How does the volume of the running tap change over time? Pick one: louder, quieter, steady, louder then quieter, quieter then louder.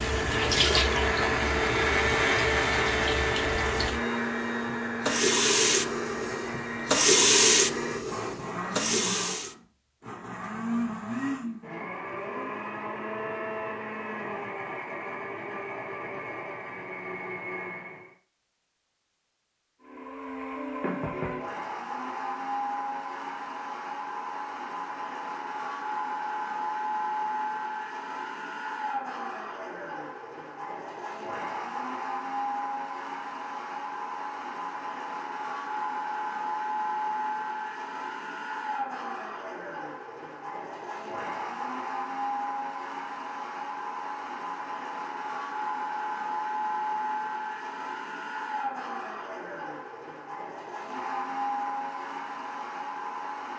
quieter then louder.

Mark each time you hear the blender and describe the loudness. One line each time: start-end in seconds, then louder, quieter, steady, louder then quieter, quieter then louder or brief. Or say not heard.
0.0-18.1 quieter
19.8-53.5 steady.